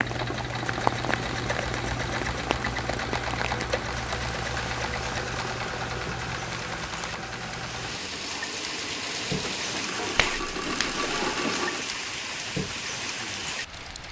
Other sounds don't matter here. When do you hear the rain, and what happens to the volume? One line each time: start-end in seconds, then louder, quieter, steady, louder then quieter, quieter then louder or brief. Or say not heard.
0.0-14.0 quieter then louder.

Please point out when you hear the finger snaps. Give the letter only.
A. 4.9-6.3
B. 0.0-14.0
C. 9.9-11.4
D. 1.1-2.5
C.